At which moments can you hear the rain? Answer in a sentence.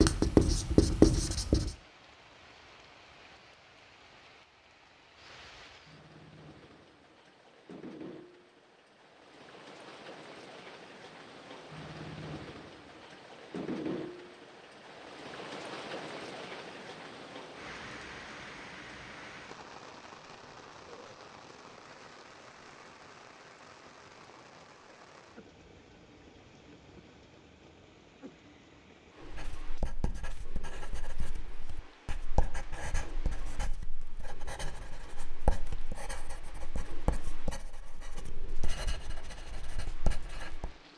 The rain can be heard from 0.2 to 40.9 s.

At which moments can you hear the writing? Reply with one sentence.
The writing can be heard from 0.0 to 1.8 s and from 29.2 to 40.7 s.